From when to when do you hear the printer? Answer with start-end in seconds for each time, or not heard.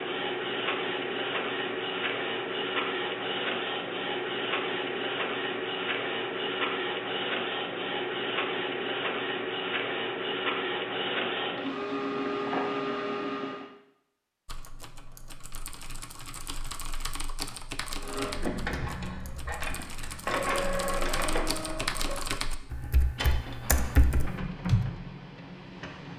0.0-13.7, 18.0-26.1.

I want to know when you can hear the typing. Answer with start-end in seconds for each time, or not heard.
14.4-24.9.